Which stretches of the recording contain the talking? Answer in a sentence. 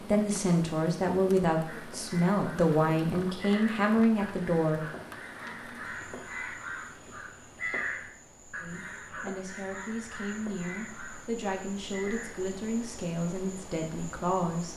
You can hear the talking from 0.1 to 4.8 s and from 8.6 to 14.7 s.